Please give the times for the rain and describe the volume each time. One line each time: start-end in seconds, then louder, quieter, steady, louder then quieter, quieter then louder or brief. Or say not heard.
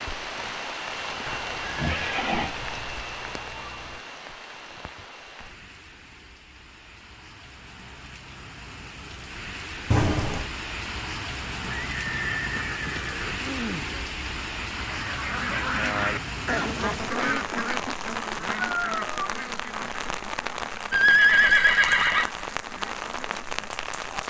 0.0-24.2 quieter then louder.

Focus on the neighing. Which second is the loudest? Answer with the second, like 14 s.
21 s.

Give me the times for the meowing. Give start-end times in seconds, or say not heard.
1.2-4.0, 9.9-10.5, 18.6-19.3.